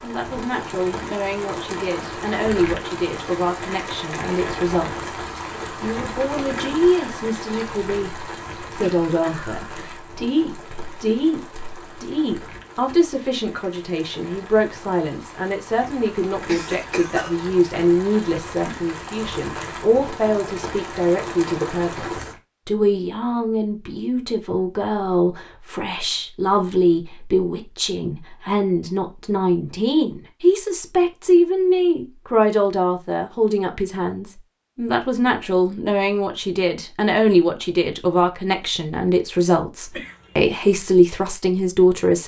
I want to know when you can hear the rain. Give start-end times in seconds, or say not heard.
0.0-22.4.